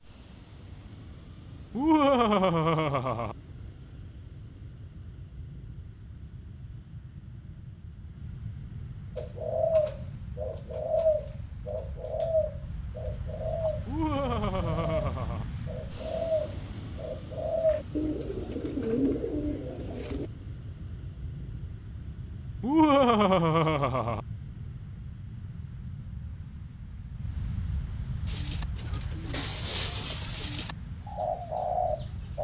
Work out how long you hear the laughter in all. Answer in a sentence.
You can hear the laughter for 5 seconds altogether.